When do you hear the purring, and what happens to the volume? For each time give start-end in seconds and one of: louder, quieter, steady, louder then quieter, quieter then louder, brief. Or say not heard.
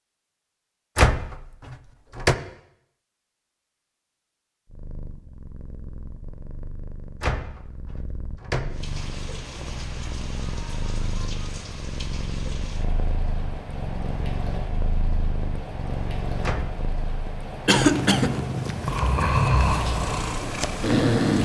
4.7-21.3 louder.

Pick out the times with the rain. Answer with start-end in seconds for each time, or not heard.
8.7-21.3.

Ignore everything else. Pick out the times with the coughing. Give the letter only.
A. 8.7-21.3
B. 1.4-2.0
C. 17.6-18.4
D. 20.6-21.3
C.